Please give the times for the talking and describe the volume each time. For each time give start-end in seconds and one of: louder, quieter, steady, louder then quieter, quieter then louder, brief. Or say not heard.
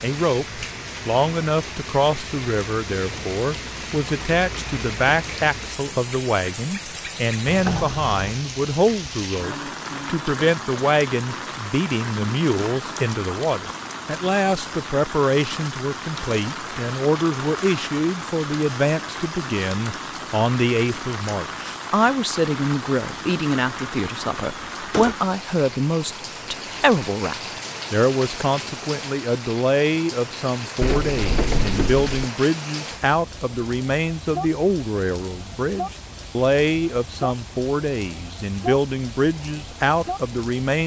0.0-40.8 steady.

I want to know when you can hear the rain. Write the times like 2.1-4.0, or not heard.
0.0-40.8.